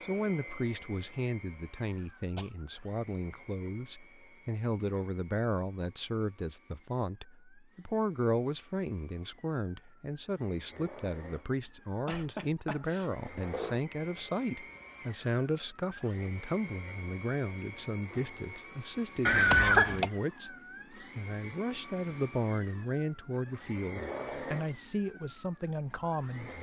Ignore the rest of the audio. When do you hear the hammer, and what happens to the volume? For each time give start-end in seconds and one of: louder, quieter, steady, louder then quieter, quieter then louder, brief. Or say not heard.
not heard.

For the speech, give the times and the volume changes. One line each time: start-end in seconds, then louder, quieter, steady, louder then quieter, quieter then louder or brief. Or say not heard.
0.0-26.5 steady.